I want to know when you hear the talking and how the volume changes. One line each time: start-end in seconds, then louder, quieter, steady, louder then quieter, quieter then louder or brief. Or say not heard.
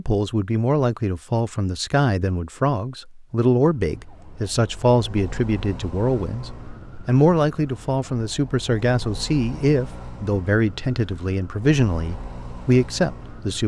0.0-13.6 steady.